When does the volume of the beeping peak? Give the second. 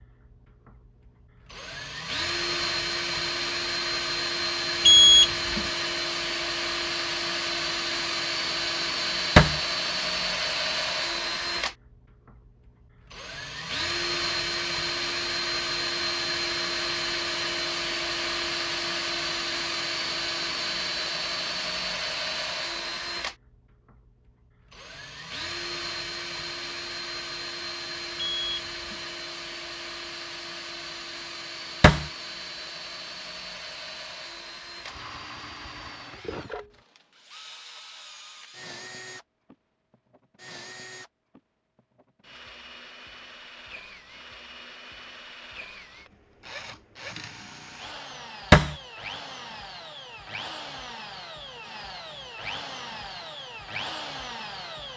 5 s.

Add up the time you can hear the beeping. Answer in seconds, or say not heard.
2 s.